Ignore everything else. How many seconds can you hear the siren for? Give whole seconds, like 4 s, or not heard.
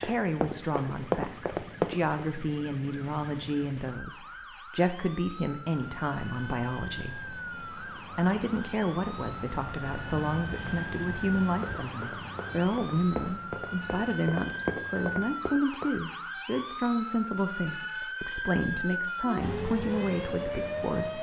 21 s.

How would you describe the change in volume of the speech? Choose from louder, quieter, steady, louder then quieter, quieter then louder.
steady.